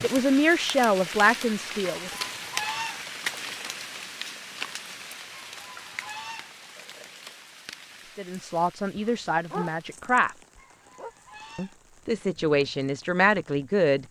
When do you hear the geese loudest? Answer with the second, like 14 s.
3 s.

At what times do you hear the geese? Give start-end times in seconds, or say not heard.
1.9-3.0, 5.3-6.5, 10.6-11.8.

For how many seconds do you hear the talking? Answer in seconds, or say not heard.
7 s.